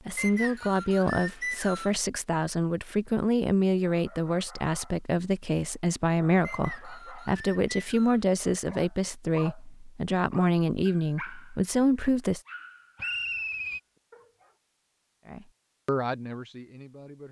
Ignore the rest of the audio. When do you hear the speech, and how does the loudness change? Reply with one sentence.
The speech can be heard from 0.1 to 12.4 s, at a steady volume; and briefly from 15.2 to 17.2 s.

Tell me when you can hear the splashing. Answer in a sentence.
You can't hear the splashing here.